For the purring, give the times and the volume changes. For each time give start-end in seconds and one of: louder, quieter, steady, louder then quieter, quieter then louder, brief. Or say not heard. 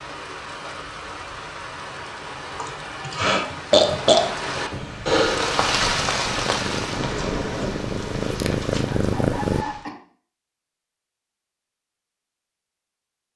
4.7-9.7 louder.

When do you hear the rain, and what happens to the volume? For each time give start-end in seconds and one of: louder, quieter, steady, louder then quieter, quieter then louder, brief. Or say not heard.
0.0-9.9 louder then quieter.